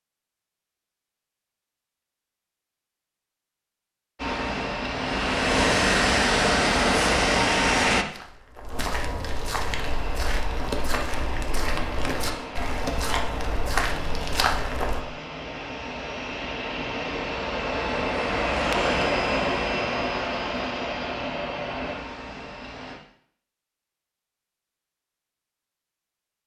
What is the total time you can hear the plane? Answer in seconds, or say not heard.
17 s.